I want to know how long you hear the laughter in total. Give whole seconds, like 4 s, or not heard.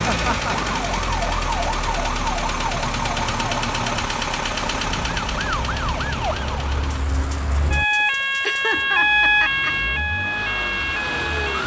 2 s.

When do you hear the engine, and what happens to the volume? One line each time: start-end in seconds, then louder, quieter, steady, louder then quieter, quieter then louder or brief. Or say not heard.
0.0-11.6 quieter then louder.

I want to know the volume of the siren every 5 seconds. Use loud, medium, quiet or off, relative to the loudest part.
medium, loud, loud.